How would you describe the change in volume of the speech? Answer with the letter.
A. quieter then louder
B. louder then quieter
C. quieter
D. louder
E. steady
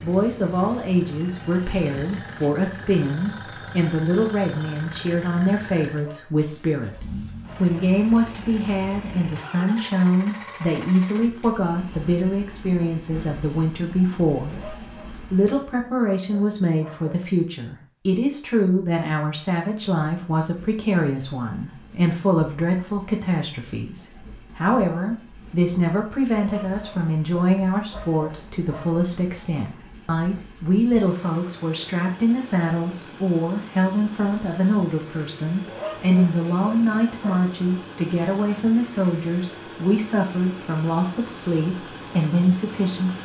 E.